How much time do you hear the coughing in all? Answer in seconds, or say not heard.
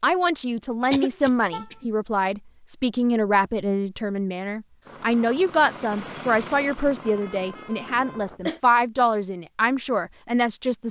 2 s.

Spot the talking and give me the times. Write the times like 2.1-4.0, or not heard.
0.0-10.8.